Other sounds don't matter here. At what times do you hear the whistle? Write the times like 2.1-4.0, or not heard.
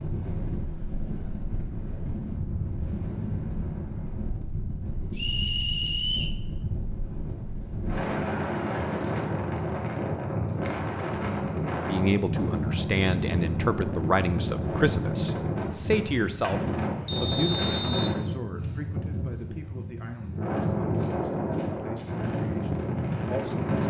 5.2-6.4, 17.1-18.2.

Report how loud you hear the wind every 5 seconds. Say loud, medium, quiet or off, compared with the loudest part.
medium, loud, loud, loud, loud.